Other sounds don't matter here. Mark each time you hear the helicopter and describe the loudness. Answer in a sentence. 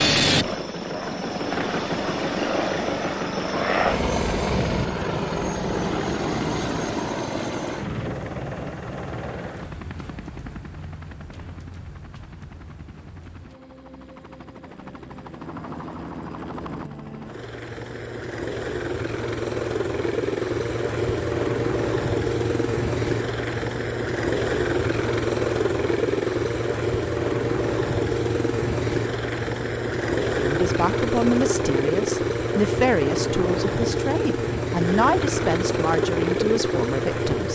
The helicopter can be heard from 0.0 to 37.4 s, getting quieter then louder.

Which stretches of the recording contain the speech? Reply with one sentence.
You can hear the speech from 30.4 to 37.4 s.